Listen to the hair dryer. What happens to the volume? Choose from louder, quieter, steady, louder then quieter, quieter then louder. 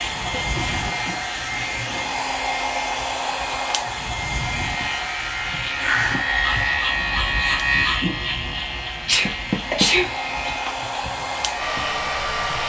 quieter then louder.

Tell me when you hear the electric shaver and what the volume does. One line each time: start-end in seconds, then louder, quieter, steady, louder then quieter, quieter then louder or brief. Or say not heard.
0.0-12.6 louder then quieter.